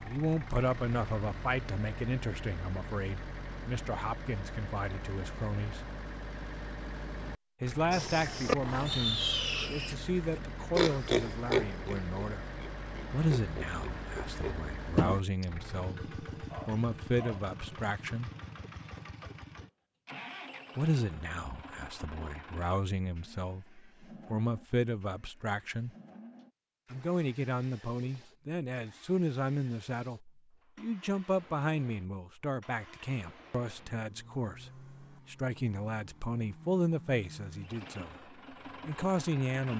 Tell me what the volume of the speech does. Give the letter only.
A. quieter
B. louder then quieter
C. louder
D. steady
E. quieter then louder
D.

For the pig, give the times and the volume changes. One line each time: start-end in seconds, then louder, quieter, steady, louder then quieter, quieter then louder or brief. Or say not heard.
7.9-15.4 quieter then louder.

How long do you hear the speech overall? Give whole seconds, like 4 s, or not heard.
34 s.